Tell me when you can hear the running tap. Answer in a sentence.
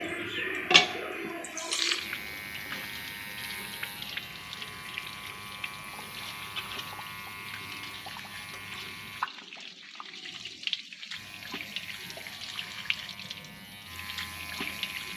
You can hear the running tap from 0.0 to 15.1 s.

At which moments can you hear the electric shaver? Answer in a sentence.
You can hear the electric shaver from 0.0 to 9.3 s and from 11.1 to 15.1 s.